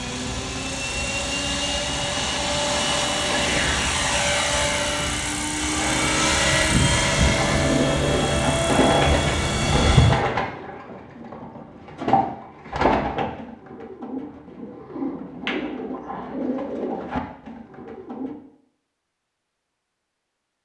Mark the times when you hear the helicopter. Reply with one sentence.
The helicopter can be heard from 0.0 to 10.2 s.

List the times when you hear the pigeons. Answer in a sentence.
You can hear the pigeons from 7.2 to 18.4 s.